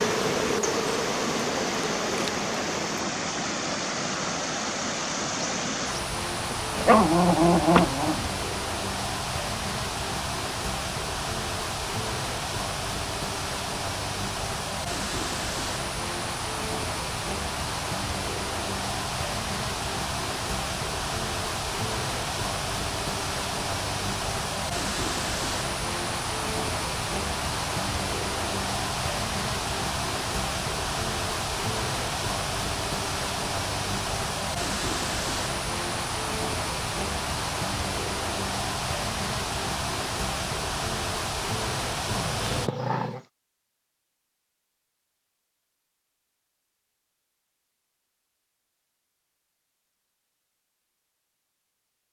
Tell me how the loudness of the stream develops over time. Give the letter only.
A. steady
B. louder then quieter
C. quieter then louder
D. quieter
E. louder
A.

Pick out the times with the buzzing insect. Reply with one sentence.
You can hear the buzzing insect from 0.0 to 3.0 s.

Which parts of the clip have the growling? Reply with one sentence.
The growling can be heard from 6.5 to 8.3 s and from 42.1 to 43.2 s.